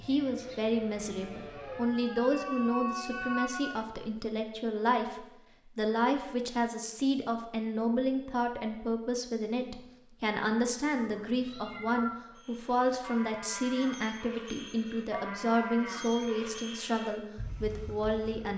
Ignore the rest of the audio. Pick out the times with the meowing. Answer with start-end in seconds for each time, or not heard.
1.5-3.9, 10.9-12.2.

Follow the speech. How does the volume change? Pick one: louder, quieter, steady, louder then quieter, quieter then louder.
steady.